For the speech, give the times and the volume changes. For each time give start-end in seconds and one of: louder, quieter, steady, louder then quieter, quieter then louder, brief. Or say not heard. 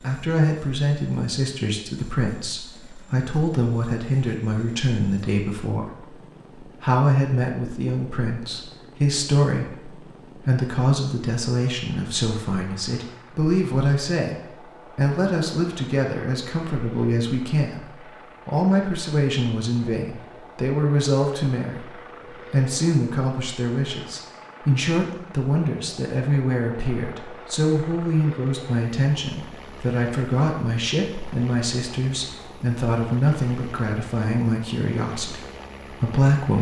0.0-36.5 steady.